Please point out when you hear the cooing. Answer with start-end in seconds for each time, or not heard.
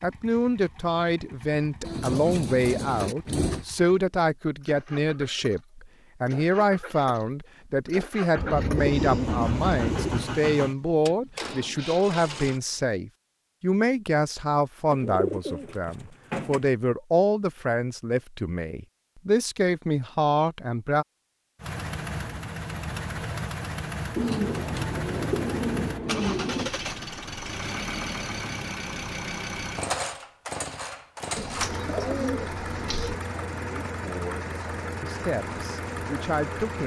1.8-3.6, 8.3-10.3, 14.9-16.7, 24.1-26.7, 31.4-33.2.